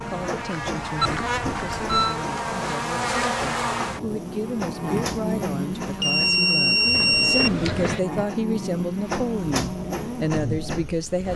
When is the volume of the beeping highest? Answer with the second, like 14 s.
7 s.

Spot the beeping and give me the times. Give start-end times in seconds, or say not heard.
1.0-2.1, 6.0-7.5.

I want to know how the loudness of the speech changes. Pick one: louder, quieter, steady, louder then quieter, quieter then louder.
louder.